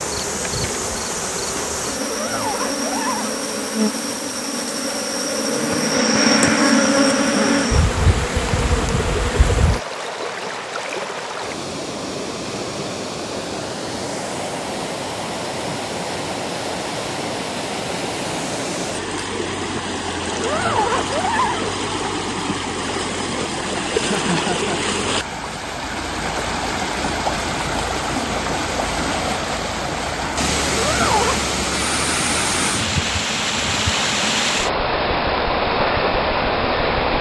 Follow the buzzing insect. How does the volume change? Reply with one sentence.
The loudness of the buzzing insect goes up, then down.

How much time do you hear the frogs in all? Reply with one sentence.
The frogs can't be heard in this clip.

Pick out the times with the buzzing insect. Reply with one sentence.
You can hear the buzzing insect from 0.0 to 9.8 s.